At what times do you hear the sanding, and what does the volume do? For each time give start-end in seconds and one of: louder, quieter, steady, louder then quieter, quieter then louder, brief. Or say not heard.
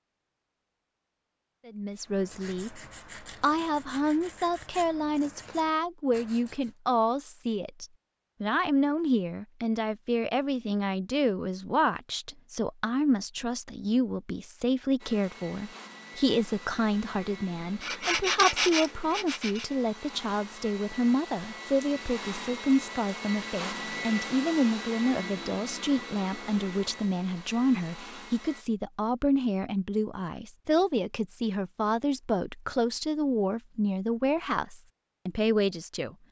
1.9-6.8 steady
17.8-19.7 brief.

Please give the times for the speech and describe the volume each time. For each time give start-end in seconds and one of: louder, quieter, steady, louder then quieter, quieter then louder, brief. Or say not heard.
1.6-2.8 brief
3.4-36.1 steady.